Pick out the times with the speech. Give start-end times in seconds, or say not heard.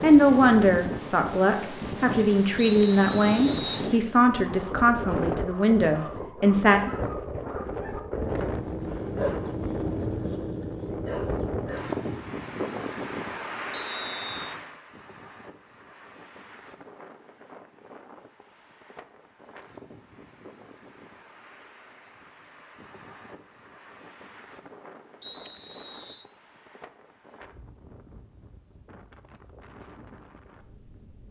0.0-6.9.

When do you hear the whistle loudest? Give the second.
3 s.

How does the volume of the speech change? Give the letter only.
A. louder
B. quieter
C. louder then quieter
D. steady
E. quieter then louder
D.